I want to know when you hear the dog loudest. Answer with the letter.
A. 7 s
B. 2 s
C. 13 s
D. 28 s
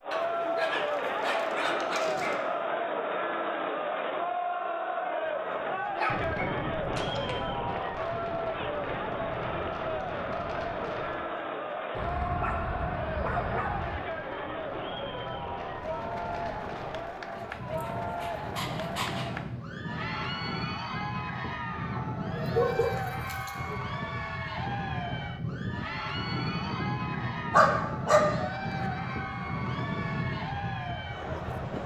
D.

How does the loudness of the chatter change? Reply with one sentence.
The loudness of the chatter goes down.